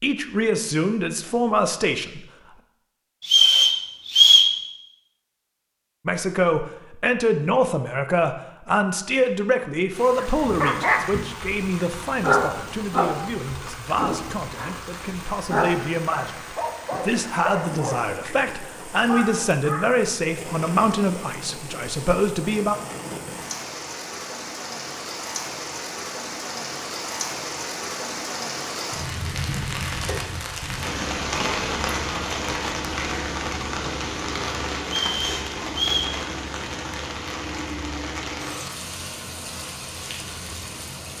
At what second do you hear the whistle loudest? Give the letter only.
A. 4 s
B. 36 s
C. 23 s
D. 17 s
A.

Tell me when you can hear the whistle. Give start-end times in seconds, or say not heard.
3.2-4.5, 34.9-36.1.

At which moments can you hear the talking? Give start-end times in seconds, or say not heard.
0.0-2.2, 6.0-22.8.